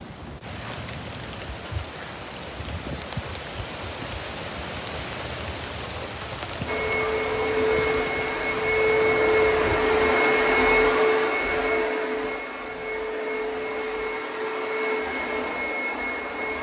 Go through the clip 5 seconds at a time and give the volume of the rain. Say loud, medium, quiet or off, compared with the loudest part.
loud, loud, off, off.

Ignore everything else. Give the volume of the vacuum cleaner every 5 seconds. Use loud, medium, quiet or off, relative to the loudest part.
off, loud, loud, medium.